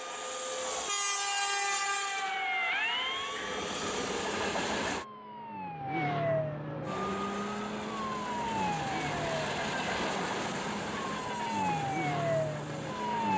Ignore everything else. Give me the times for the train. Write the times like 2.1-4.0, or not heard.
0.0-5.0, 6.8-13.3.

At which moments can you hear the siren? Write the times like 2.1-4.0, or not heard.
0.0-13.3.